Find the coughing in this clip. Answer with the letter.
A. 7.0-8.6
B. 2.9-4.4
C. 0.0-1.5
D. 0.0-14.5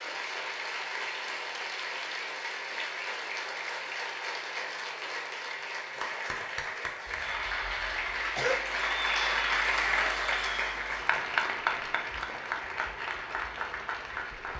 A.